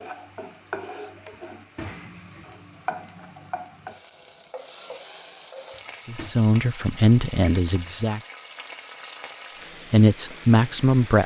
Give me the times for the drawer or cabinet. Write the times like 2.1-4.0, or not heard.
1.3-2.5, 5.7-6.3.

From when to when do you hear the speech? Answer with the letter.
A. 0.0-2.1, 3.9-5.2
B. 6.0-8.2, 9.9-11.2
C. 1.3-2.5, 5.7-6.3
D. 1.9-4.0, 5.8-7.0
B.